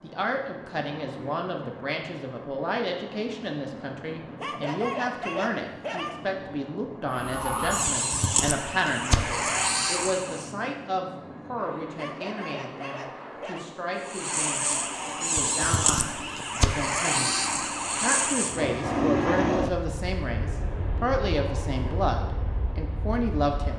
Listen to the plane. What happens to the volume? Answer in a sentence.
The volume of the plane goes up.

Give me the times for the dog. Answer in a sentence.
You can hear the dog from 4.4 to 6.2 s and from 11.9 to 13.7 s.